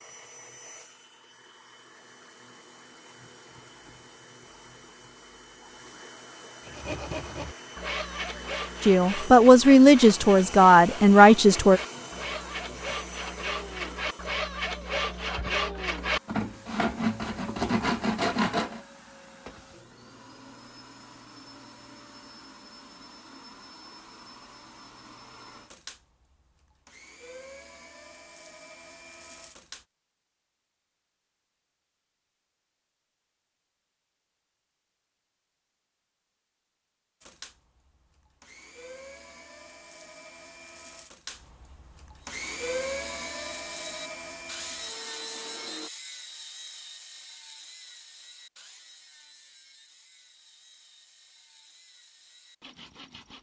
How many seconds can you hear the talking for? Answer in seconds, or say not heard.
3 s.